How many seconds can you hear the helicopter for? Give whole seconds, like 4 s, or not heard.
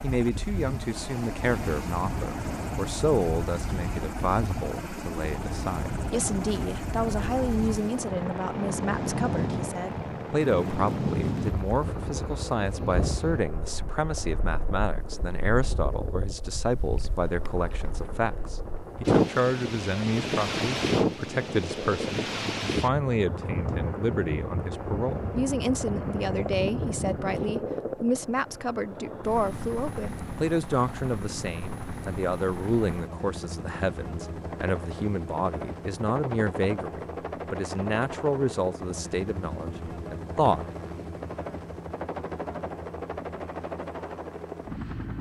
45 s.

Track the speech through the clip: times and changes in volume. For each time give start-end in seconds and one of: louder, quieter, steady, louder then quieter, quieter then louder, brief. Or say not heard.
0.0-40.6 steady.